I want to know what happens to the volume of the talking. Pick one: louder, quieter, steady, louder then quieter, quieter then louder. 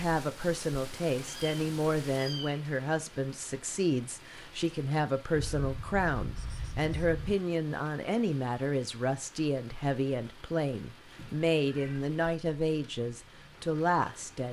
steady.